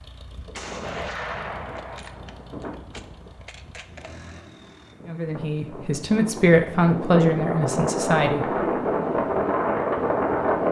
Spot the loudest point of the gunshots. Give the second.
1 s.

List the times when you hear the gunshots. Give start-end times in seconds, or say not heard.
0.5-4.2.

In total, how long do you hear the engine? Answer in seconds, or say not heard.
5 s.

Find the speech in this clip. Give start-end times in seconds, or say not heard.
5.0-8.4.